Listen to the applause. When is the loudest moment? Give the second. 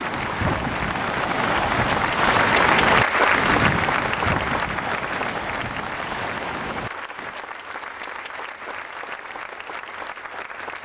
3 s.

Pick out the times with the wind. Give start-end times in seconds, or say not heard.
0.0-7.3.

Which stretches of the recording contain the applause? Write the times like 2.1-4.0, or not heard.
0.0-10.8.